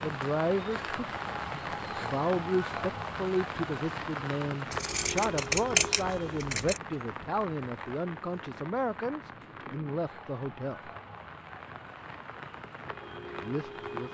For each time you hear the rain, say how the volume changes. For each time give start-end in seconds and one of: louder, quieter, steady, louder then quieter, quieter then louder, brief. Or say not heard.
0.0-14.0 quieter.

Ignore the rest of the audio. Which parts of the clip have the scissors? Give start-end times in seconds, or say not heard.
4.7-6.8.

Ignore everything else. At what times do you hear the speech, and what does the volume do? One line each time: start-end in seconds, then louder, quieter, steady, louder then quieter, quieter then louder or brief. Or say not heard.
0.0-10.9 steady
13.3-14.0 brief.